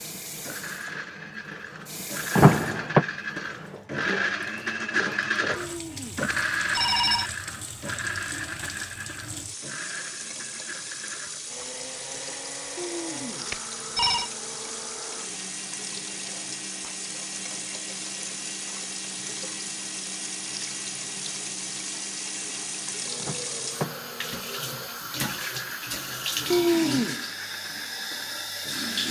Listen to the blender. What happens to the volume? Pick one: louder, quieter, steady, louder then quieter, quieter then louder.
quieter.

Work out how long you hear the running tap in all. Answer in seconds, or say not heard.
29 s.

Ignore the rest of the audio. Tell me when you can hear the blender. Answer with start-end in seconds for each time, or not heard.
0.4-29.0.